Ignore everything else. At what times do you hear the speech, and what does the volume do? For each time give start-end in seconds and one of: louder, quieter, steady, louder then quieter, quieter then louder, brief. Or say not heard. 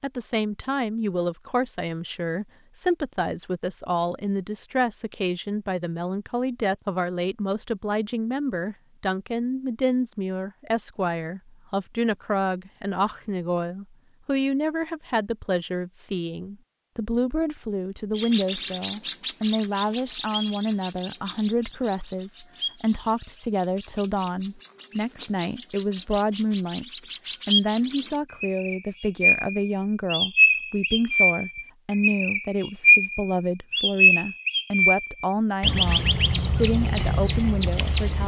0.0-38.2 steady.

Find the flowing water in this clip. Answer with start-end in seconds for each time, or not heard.
not heard.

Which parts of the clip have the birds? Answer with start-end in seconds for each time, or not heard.
18.1-38.2.